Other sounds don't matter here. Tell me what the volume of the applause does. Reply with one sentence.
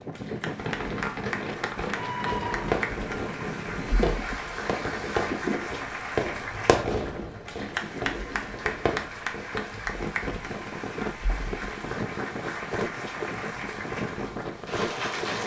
The volume of the applause stays about the same.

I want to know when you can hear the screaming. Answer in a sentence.
The screaming can be heard from 1.9 to 2.7 s.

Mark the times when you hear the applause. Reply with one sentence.
You can hear the applause from 0.0 to 15.4 s.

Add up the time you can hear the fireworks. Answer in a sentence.
You can hear the fireworks for 9 seconds altogether.